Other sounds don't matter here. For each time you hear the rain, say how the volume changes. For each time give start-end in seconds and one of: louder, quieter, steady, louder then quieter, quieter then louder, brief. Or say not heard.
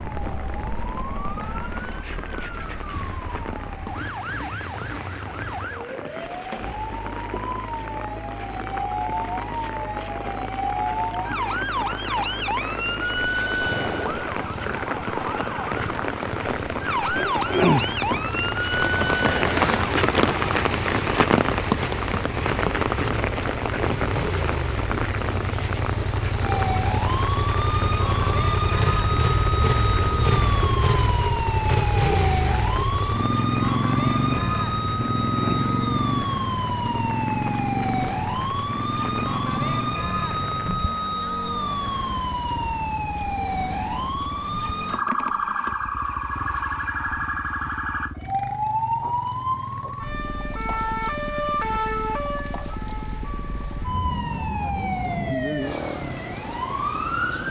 0.0-40.8 louder then quieter.